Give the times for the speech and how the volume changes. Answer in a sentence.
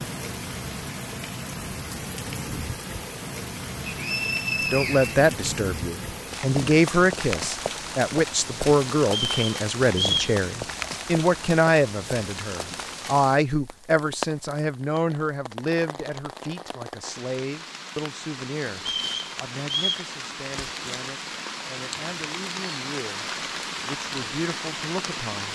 You can hear the speech from 4.7 to 25.4 s, getting quieter.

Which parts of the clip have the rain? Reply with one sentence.
You can hear the rain from 0.0 to 25.4 s.